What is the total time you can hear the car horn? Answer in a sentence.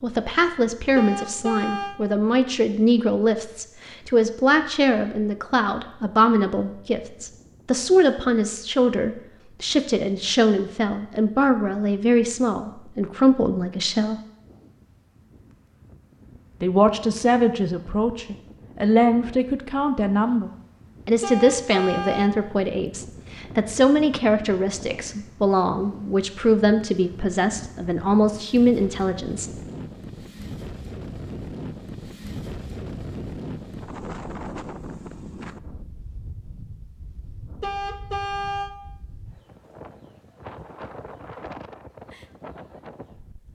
You can hear the car horn for 3 seconds altogether.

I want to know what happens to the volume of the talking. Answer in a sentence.
The loudness of the talking stays about the same.